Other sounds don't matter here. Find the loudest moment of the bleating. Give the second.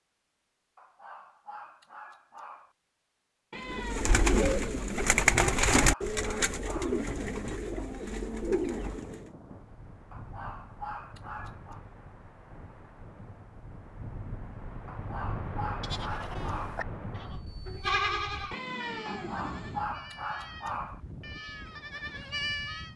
18 s.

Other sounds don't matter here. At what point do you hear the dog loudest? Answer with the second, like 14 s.
20 s.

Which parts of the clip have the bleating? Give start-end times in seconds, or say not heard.
15.8-22.9.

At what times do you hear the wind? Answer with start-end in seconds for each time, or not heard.
6.5-22.9.